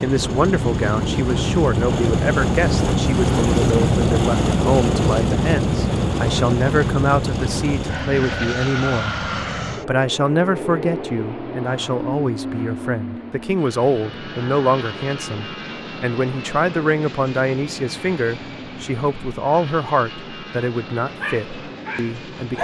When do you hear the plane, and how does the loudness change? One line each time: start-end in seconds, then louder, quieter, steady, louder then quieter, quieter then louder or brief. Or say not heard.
0.0-22.6 quieter.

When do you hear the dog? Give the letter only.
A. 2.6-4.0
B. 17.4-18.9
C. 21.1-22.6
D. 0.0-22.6
C.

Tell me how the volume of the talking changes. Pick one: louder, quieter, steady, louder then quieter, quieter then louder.
steady.